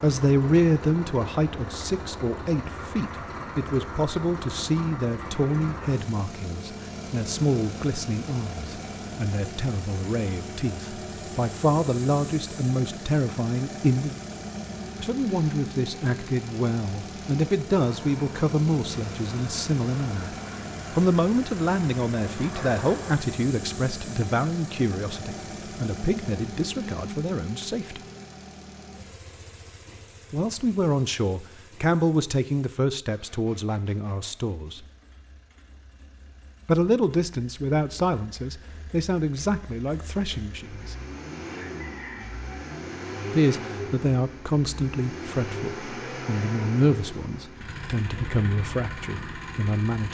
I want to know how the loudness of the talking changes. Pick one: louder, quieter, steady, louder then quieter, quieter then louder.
steady.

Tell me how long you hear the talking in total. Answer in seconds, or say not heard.
42 s.